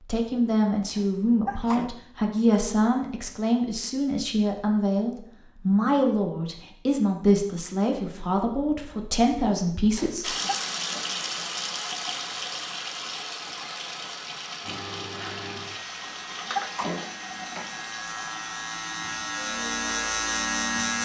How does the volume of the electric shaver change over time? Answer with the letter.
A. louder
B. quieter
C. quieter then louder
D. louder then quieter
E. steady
A.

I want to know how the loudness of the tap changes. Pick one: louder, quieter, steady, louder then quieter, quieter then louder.
quieter.